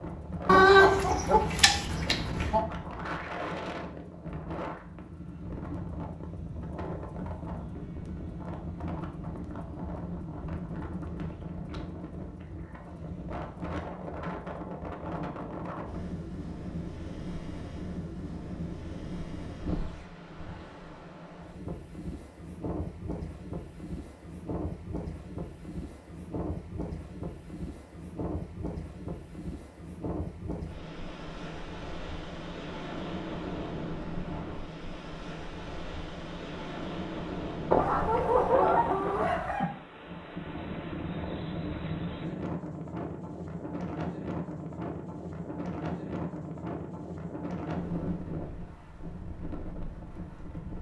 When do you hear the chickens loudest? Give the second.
1 s.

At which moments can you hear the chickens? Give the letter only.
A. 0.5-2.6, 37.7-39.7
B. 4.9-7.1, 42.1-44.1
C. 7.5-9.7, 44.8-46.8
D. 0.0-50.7
A.